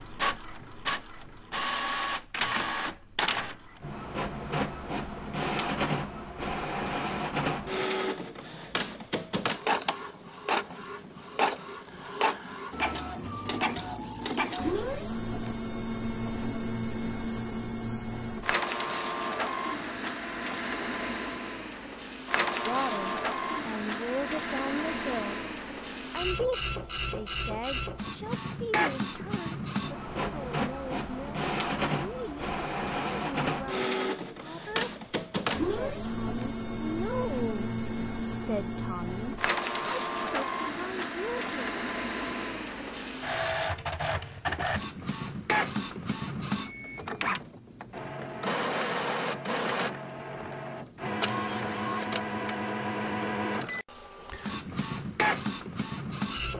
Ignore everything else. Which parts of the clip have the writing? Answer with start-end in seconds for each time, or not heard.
not heard.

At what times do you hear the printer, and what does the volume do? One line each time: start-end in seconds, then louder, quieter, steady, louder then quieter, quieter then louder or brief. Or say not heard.
0.0-56.5 steady.